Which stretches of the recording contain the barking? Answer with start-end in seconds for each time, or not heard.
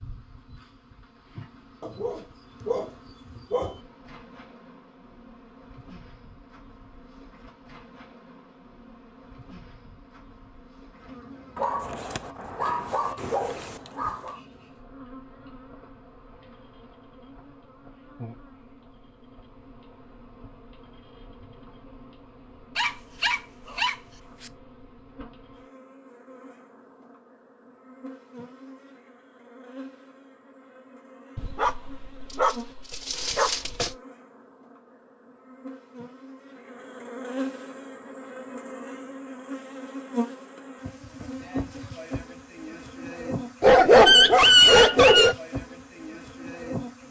1.8-3.8, 11.6-14.4, 22.8-24.5, 31.4-34.0, 43.6-45.4.